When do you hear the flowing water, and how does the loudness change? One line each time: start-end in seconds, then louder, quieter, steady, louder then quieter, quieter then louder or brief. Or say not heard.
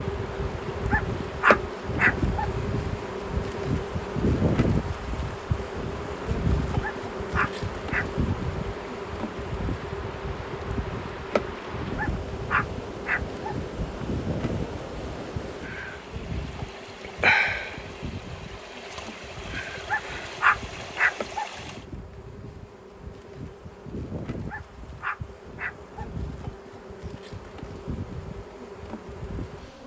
0.0-21.9 louder.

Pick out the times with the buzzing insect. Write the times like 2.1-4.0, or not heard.
0.0-29.8.